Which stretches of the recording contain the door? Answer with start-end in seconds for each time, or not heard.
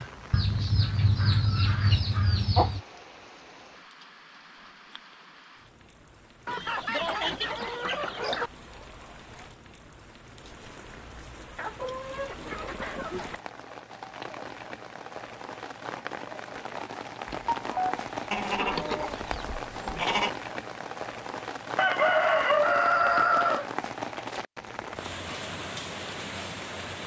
not heard.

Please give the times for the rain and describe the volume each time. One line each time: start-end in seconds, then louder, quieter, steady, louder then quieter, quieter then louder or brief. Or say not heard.
0.0-27.0 louder.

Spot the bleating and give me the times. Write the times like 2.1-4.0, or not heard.
18.3-20.3.